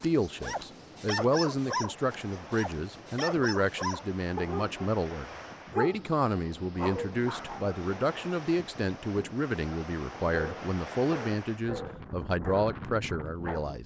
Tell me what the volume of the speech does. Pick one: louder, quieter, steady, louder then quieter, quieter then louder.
steady.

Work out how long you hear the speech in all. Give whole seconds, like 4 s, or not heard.
14 s.